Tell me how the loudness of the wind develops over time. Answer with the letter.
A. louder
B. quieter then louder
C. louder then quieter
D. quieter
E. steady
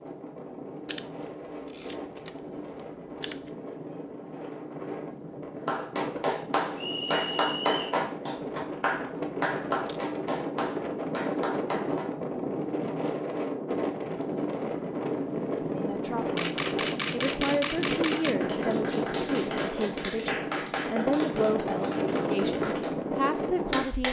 A.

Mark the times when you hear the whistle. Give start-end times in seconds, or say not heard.
6.8-8.0.